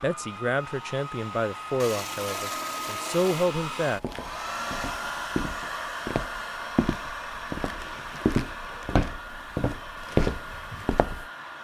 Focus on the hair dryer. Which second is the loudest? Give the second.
5 s.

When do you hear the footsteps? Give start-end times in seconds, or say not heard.
3.8-11.2.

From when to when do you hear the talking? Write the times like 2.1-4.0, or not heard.
0.0-4.0.